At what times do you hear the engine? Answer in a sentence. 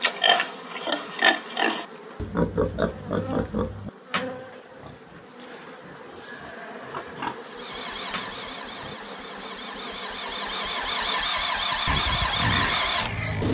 You can hear the engine from 7.5 to 13.4 s.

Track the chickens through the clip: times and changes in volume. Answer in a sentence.
The chickens can't be heard in this clip.